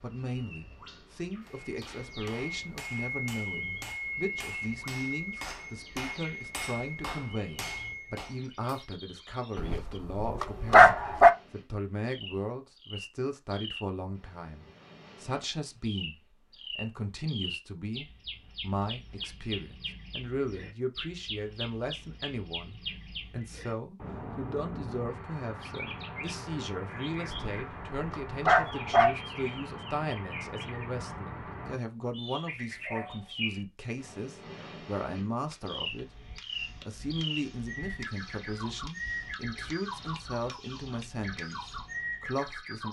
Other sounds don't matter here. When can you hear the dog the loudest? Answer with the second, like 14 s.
11 s.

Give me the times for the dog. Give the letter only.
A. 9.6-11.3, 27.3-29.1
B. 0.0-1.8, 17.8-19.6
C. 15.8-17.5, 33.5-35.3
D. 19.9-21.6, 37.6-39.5
A.